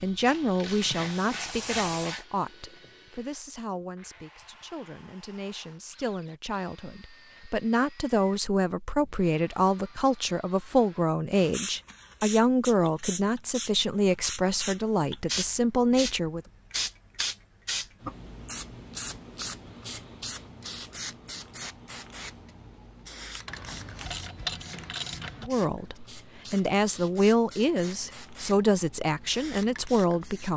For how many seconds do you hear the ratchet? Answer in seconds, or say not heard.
4 s.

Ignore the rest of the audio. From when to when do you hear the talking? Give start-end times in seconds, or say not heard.
0.0-16.4, 25.4-30.5.